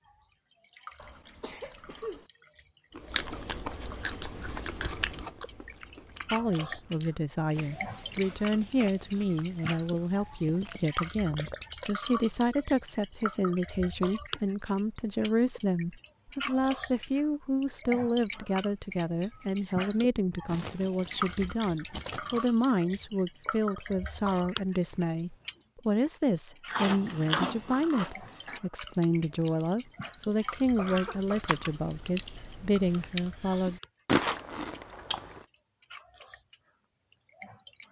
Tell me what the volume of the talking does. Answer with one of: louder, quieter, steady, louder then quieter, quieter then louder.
steady.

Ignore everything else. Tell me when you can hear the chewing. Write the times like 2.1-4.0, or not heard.
3.0-11.8, 26.6-35.5.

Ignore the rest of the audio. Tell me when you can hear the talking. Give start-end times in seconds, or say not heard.
6.3-33.8.